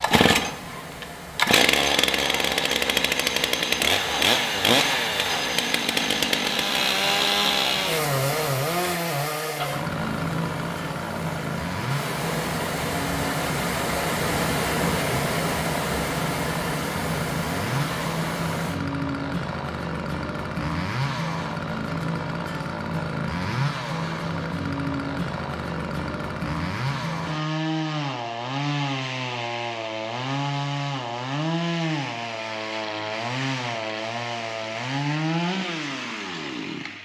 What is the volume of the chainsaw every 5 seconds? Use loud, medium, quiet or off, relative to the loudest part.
loud, loud, medium, medium, medium, medium, medium, medium.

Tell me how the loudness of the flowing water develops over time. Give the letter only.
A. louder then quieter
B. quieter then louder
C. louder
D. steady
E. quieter
C.